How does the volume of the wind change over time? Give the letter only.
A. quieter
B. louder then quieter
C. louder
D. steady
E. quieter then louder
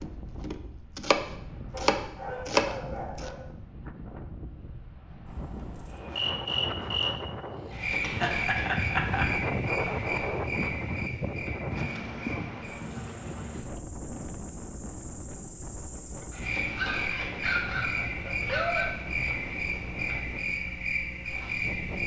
B.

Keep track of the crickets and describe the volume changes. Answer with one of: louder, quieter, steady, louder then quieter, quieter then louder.
quieter then louder.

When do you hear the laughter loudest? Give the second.
9 s.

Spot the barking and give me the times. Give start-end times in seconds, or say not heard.
1.7-3.4, 16.3-18.9.